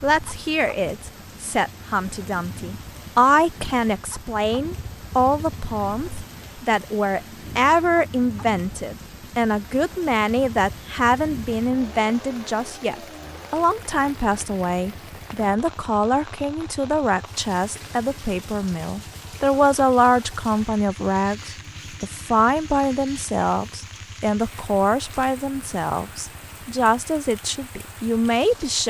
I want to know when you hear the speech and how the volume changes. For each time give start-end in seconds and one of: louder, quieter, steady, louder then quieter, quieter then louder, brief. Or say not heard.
0.0-28.8 steady.